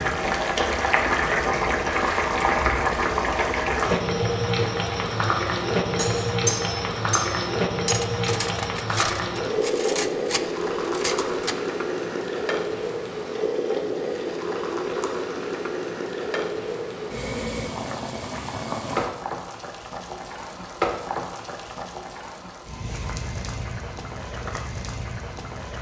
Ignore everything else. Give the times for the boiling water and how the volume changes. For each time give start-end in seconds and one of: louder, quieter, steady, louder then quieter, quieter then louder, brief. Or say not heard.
0.0-25.7 quieter.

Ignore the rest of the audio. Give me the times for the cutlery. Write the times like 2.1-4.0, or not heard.
6.0-11.6.